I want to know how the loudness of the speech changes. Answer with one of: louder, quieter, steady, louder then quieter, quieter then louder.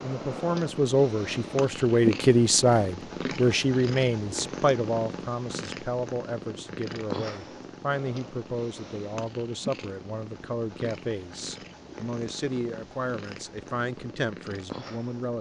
quieter.